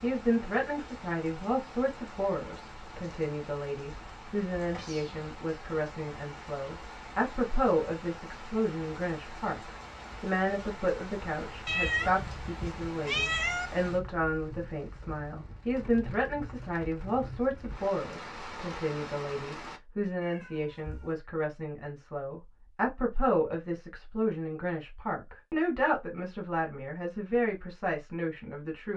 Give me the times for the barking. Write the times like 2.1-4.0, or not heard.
not heard.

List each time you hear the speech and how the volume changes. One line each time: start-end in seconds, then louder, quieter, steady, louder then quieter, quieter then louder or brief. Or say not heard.
0.0-28.9 steady.